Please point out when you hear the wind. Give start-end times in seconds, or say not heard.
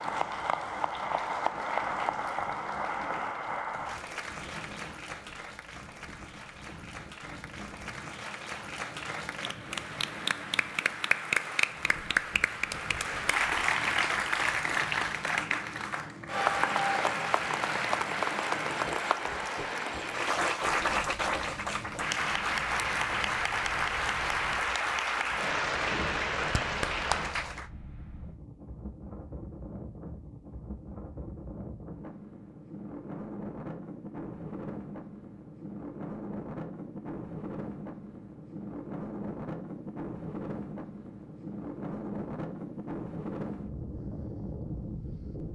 0.0-45.5.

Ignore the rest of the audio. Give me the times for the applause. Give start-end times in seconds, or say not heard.
0.0-27.7.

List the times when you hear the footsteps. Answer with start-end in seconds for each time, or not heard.
not heard.